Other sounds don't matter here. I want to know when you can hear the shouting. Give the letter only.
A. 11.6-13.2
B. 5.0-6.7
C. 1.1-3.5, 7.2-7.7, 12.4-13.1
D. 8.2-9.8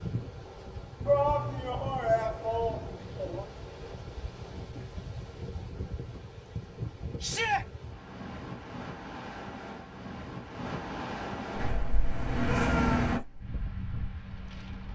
C.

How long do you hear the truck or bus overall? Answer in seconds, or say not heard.
2 s.